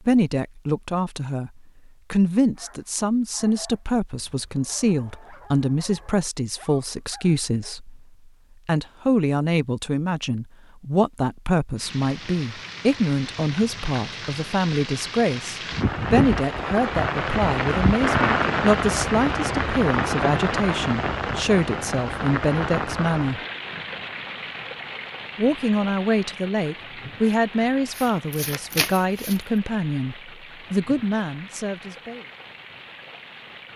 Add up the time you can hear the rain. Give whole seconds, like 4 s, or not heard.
22 s.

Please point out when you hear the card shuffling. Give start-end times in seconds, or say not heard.
27.9-29.5.